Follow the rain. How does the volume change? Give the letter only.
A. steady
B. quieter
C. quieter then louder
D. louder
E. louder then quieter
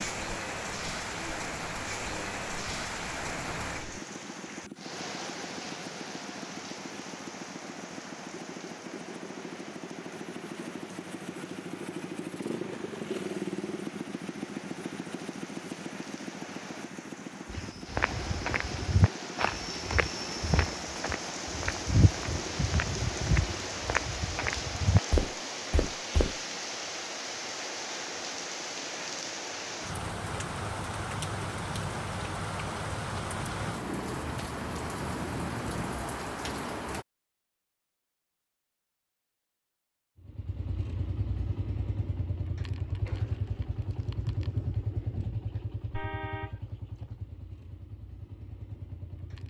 C.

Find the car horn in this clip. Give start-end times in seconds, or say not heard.
45.9-46.6.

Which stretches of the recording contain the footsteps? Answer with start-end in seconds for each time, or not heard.
17.5-26.4.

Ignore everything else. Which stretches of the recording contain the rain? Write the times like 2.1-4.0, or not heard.
0.0-37.0.